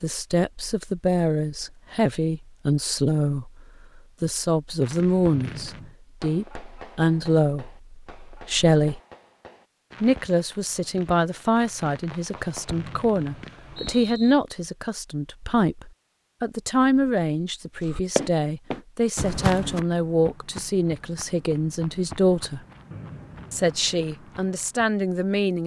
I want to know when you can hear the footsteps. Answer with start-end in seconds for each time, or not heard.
17.8-24.9.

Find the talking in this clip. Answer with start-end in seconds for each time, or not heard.
0.0-9.0, 10.0-22.6, 23.5-25.6.